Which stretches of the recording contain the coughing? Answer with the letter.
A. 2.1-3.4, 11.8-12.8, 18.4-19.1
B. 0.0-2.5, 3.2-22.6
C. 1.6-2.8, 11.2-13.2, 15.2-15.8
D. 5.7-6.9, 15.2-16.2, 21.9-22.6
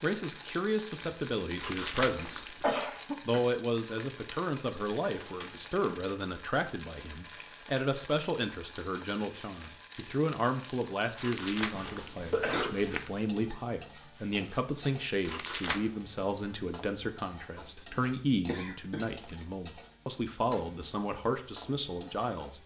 A.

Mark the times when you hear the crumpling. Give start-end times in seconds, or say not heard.
1.6-2.8, 11.2-13.2, 15.2-15.8.